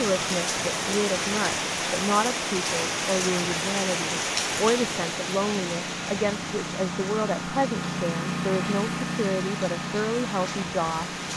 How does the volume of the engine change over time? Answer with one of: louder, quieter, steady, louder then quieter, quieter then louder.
louder.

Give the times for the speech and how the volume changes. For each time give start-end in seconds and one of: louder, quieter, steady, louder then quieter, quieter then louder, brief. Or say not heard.
0.0-11.1 steady.